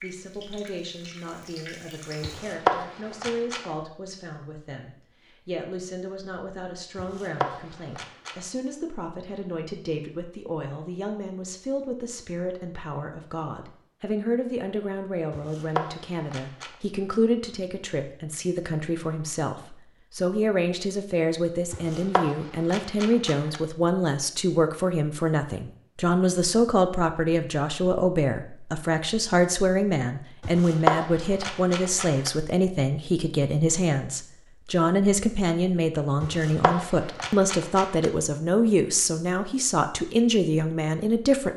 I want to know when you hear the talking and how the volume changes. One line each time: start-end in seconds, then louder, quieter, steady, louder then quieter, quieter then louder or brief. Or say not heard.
0.0-41.5 louder.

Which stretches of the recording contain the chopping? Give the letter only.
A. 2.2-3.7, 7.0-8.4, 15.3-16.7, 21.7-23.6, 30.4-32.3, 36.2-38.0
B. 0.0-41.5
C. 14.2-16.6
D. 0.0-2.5
A.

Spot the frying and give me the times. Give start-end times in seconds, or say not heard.
0.0-2.5.